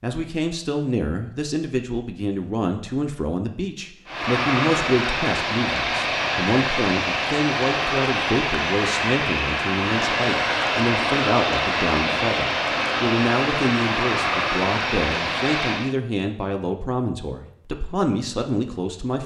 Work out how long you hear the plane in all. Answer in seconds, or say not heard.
12 s.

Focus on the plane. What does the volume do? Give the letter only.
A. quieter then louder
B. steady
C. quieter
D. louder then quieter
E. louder
B.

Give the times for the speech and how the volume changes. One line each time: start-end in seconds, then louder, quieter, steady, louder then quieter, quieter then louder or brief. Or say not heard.
0.0-19.2 steady.